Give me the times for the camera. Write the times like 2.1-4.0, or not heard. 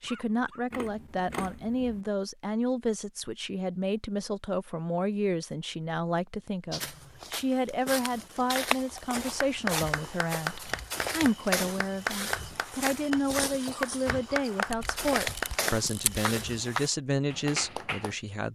0.7-2.0, 14.7-16.2.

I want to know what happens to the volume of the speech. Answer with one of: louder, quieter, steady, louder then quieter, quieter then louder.
steady.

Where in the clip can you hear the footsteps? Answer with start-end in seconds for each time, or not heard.
6.7-16.9.